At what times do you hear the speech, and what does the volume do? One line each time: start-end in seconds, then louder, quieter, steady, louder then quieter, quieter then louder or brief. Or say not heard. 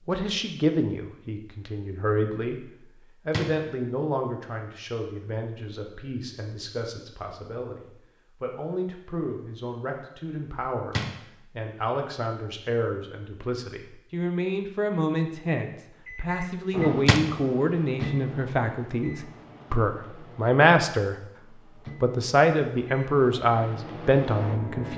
0.1-21.1 quieter then louder
22.0-24.9 brief.